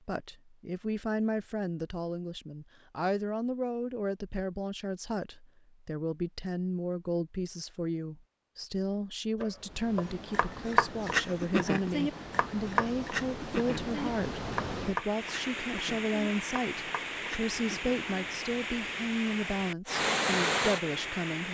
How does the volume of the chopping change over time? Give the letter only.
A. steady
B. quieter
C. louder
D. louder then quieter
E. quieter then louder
B.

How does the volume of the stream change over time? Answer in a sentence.
The volume of the stream goes up.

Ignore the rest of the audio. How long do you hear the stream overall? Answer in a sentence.
You can hear the stream for 12 seconds altogether.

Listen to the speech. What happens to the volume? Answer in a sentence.
The volume of the speech stays about the same.